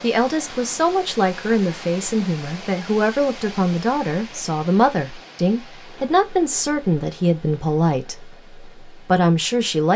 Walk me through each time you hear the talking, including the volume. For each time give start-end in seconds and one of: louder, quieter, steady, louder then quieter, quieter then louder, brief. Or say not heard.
0.0-9.9 steady.